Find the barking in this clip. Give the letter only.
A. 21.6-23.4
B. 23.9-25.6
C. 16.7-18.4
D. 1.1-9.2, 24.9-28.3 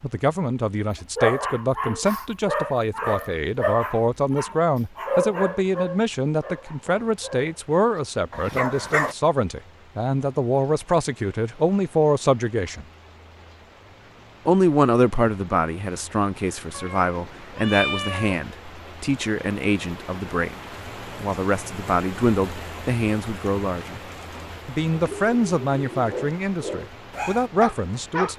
D.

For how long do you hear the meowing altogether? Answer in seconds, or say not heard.
2 s.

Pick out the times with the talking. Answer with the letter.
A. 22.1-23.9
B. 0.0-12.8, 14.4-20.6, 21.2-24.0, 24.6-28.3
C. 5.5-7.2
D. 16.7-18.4
B.